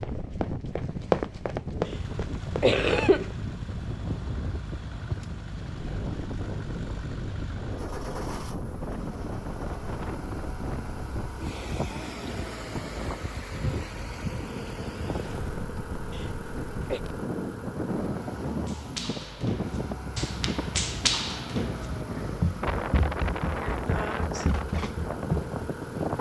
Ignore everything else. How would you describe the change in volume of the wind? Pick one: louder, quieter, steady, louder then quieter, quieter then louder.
steady.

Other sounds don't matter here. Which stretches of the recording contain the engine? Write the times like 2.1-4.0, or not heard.
1.8-26.1.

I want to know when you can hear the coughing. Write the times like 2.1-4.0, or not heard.
2.2-3.3, 16.1-17.0.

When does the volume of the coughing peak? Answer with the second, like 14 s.
3 s.